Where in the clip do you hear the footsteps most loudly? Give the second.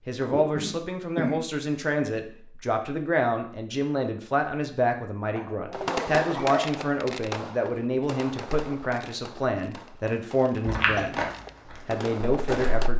11 s.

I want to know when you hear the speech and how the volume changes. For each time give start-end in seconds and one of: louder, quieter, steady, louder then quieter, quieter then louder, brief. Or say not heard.
0.1-12.9 steady.